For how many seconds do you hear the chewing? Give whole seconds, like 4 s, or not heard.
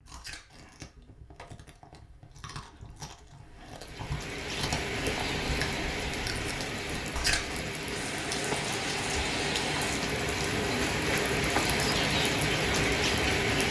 8 s.